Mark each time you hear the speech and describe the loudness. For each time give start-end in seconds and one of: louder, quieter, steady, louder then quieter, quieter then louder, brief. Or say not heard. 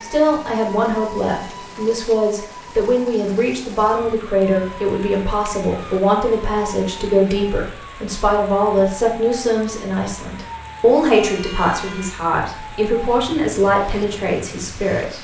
0.0-15.1 steady.